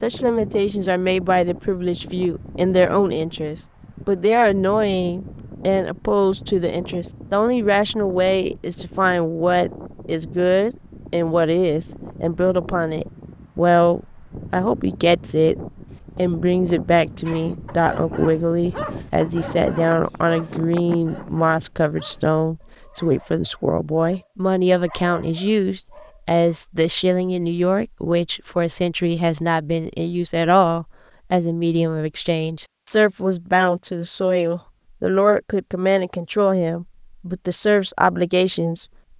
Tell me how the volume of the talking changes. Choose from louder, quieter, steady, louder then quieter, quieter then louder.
steady.